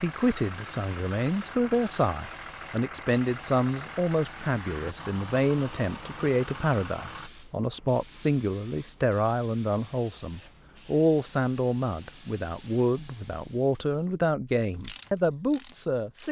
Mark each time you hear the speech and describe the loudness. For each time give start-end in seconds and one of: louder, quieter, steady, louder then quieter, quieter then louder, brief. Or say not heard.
0.0-16.2 steady.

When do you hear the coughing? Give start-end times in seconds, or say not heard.
not heard.